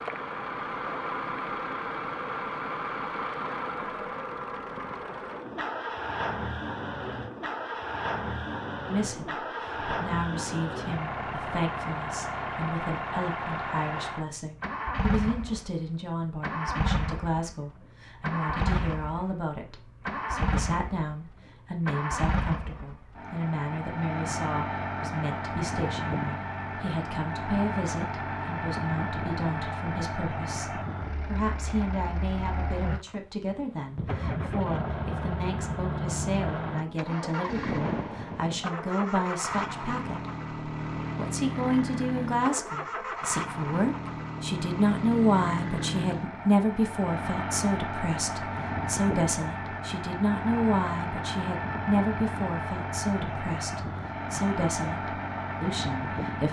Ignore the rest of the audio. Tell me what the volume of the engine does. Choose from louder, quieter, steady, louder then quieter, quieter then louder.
steady.